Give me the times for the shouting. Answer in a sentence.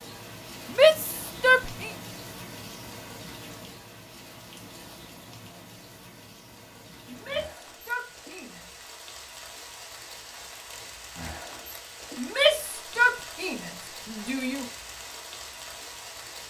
The shouting can be heard from 0.7 to 1.9 s, from 7.0 to 8.6 s and from 12.2 to 14.7 s.